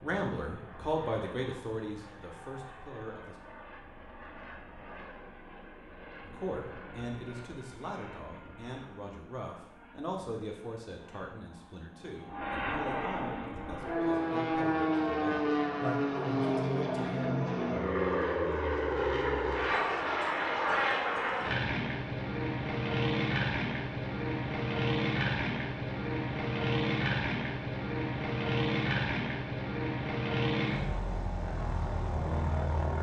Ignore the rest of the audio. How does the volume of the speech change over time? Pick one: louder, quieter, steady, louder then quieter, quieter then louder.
quieter then louder.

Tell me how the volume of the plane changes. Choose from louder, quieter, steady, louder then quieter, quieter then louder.
louder.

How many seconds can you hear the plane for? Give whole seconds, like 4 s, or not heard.
33 s.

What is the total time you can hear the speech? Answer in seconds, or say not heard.
15 s.